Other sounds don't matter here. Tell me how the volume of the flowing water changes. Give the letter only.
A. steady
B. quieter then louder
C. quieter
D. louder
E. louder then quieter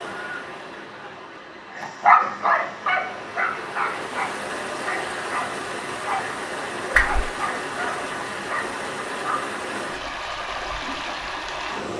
D.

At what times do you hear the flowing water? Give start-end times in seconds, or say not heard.
0.0-11.9.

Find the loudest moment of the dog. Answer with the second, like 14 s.
2 s.